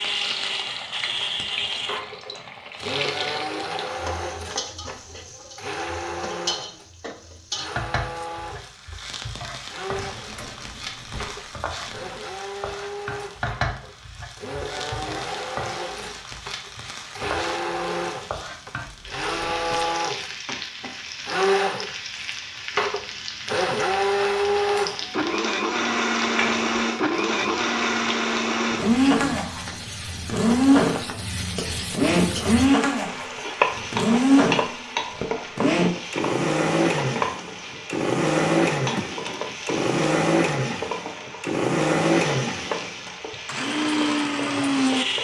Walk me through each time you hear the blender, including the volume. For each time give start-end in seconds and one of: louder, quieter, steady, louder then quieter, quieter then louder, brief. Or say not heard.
0.0-45.1 louder.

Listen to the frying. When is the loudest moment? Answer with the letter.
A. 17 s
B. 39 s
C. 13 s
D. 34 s
D.